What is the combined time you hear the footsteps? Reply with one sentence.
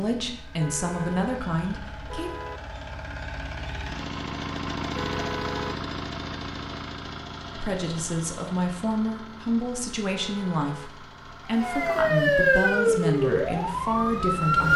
You can't hear the footsteps here.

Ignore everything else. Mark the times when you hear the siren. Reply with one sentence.
The siren can be heard from 11.5 to 14.7 s.